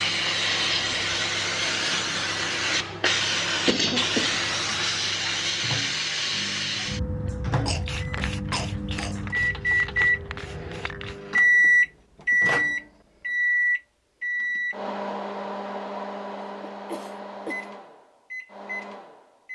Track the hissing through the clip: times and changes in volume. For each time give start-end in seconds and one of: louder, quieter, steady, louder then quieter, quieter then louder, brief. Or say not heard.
0.0-11.2 quieter.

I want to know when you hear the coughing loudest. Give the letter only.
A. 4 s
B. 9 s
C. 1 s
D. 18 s
A.